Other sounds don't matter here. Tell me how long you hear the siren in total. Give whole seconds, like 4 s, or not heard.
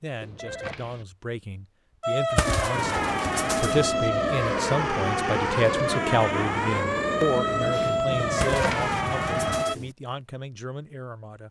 8 s.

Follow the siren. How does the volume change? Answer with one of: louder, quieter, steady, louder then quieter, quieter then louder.
steady.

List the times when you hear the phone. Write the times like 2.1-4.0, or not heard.
0.2-1.1, 8.2-8.9.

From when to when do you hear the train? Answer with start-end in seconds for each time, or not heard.
2.7-9.7.